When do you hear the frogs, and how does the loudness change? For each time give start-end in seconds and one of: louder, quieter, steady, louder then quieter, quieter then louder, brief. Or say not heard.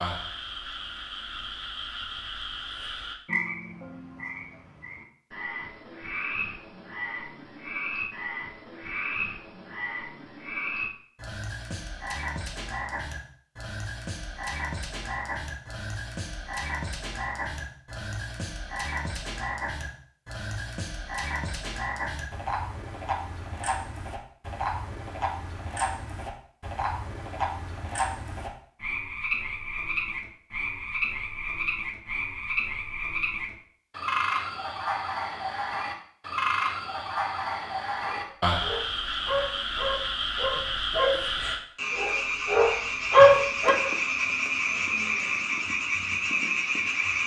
0.0-47.2 louder.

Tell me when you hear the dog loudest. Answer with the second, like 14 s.
43 s.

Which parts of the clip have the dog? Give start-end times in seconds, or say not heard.
38.0-43.8.